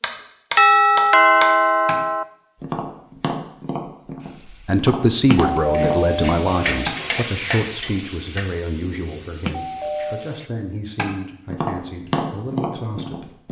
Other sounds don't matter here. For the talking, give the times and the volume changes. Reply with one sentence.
The talking can be heard from 4.5 to 13.3 s, getting quieter.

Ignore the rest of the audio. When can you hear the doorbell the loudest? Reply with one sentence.
The loudest moment of the doorbell is at 1 second.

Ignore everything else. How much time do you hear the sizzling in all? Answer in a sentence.
You can hear the sizzling for 6 seconds altogether.